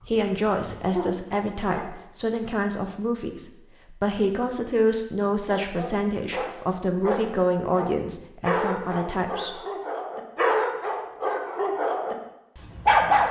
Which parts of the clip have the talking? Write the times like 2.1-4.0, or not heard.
0.1-9.6.